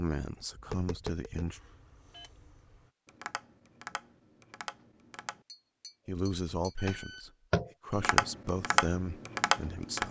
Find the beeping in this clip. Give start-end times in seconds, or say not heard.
1.4-2.9, 6.8-7.3.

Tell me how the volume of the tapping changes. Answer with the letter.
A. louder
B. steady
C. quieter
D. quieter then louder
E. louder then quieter
A.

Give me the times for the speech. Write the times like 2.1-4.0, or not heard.
0.0-1.6, 6.0-10.0.